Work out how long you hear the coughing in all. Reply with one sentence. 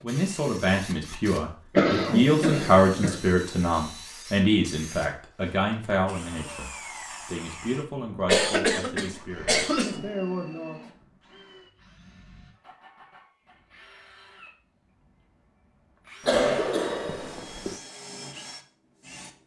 You can hear the coughing for 5 seconds altogether.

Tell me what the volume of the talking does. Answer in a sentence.
The volume of the talking goes down.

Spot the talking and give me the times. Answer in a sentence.
You can hear the talking from 0.0 to 10.8 s.